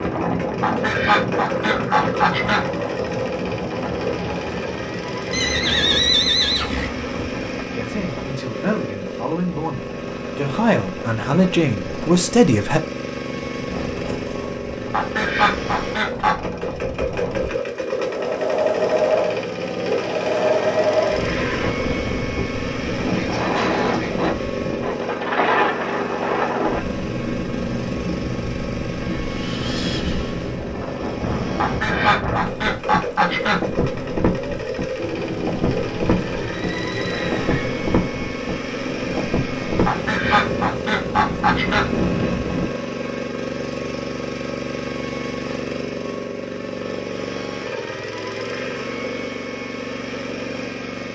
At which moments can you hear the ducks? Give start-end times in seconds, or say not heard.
0.6-2.6, 14.9-16.6, 31.6-33.6, 39.9-41.9.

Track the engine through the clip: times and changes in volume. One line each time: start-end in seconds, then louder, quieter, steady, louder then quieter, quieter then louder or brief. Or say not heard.
0.0-51.0 steady.